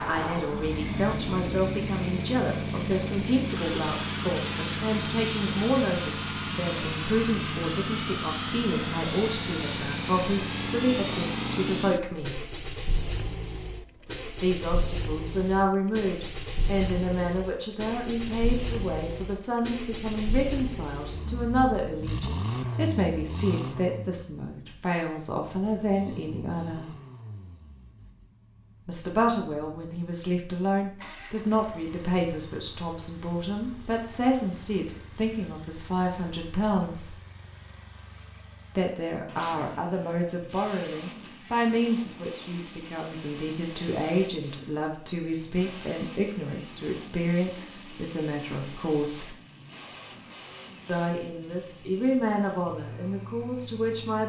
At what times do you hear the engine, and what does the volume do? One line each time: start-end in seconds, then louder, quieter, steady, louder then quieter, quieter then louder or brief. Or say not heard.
0.0-54.2 quieter.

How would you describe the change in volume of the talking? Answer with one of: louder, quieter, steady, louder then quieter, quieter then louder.
steady.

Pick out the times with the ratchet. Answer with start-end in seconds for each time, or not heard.
not heard.